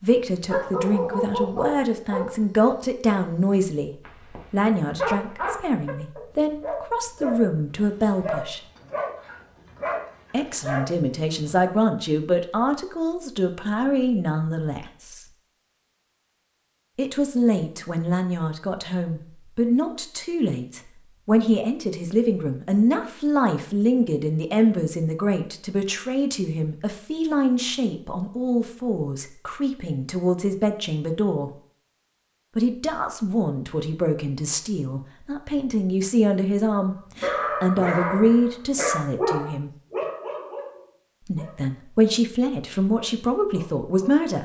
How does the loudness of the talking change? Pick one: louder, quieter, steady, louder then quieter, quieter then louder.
steady.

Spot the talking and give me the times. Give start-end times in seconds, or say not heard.
0.0-8.6, 10.3-15.2, 16.9-31.5, 32.5-39.7, 41.2-44.4.